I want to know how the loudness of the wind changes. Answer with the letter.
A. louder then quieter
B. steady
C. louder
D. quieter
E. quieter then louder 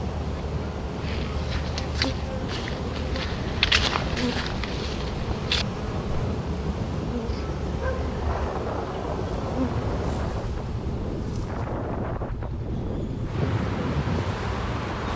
C.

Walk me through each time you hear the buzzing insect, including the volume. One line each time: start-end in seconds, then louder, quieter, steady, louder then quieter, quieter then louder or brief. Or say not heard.
0.0-15.1 quieter.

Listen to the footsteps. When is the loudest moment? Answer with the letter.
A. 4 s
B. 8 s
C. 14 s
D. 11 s
A.